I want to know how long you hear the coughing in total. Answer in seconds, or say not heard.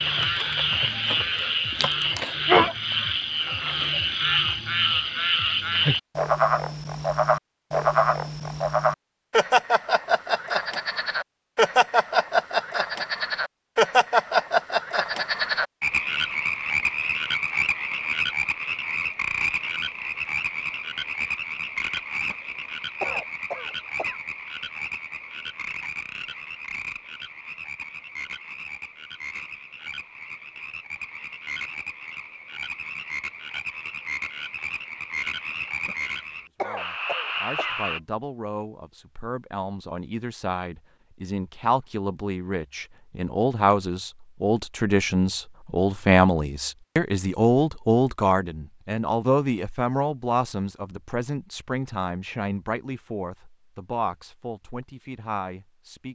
4 s.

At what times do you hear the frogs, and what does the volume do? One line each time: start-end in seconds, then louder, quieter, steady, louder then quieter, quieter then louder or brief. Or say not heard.
0.0-38.0 quieter.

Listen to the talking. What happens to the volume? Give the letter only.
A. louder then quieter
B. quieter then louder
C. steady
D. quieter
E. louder
A.